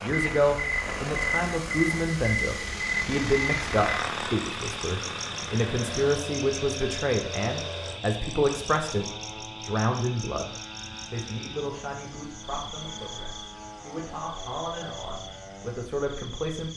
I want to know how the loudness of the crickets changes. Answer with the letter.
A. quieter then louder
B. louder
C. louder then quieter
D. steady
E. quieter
E.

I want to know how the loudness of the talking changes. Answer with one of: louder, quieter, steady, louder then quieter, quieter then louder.
quieter.